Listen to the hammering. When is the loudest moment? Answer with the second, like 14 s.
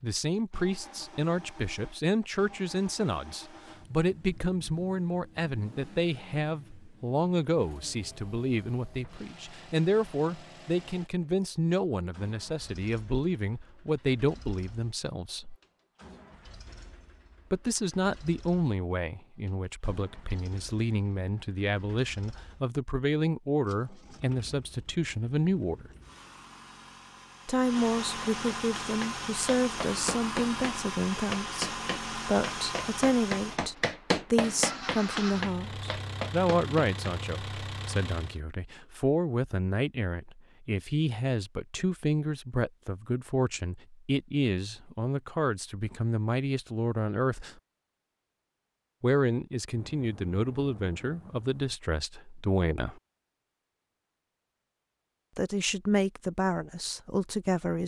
34 s.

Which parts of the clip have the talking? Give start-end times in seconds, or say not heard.
0.0-15.6, 17.5-25.9, 27.4-47.5, 49.0-53.0, 55.4-57.8.